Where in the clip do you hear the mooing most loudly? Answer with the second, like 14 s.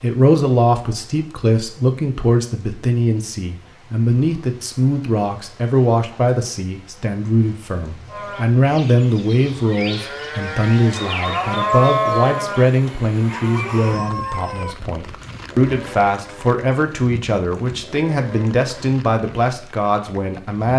12 s.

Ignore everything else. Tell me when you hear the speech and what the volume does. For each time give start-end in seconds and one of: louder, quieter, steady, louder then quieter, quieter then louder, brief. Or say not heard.
0.0-20.7 steady.